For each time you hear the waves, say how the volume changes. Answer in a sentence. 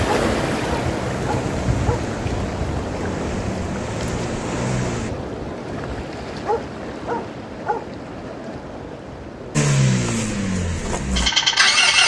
The waves can be heard from 0.0 to 12.0 s, getting quieter.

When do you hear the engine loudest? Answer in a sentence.
The loudest moment of the engine is at 12 seconds.